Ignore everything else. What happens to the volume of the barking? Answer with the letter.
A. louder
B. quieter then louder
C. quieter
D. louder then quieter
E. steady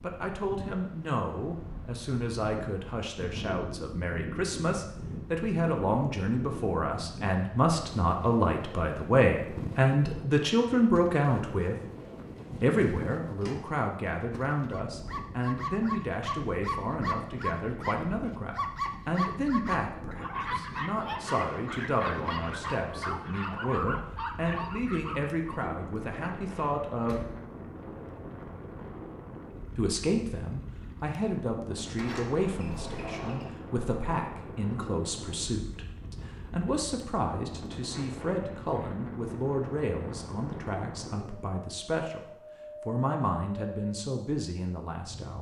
E.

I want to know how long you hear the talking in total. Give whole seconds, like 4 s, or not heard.
41 s.